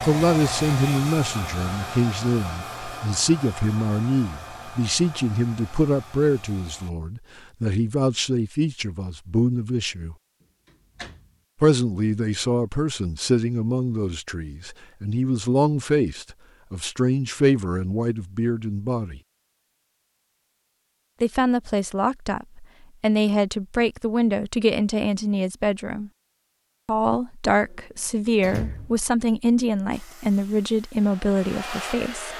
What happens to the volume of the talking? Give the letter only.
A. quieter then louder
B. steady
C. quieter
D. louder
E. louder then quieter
B.